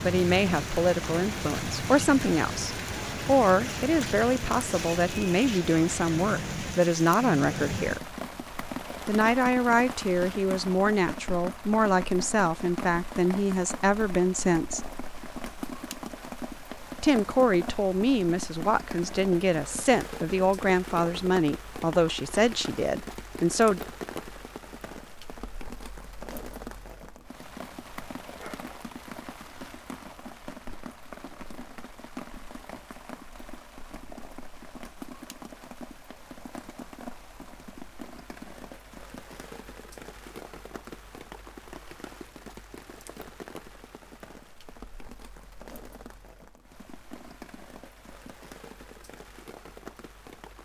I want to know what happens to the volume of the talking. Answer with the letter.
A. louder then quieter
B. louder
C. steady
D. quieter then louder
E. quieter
C.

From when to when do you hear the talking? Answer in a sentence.
The talking can be heard from 0.0 to 8.1 s, from 9.1 to 14.8 s and from 17.0 to 23.8 s.